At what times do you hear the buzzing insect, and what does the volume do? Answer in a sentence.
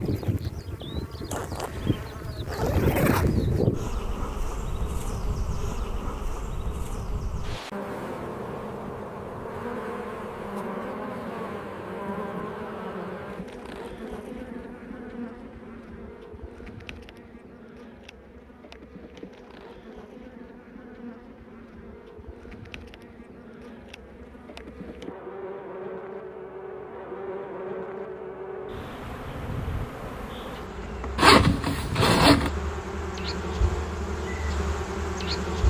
You can hear the buzzing insect from 0.0 to 35.6 s, getting quieter then louder.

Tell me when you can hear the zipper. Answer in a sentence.
You can hear the zipper from 1.3 to 3.7 s and from 31.1 to 32.5 s.